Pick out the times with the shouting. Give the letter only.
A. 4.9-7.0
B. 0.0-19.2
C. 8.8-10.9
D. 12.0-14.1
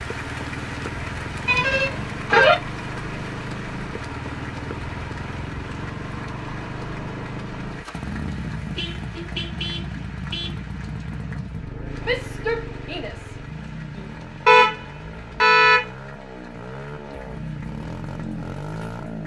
D.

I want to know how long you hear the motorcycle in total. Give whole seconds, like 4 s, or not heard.
19 s.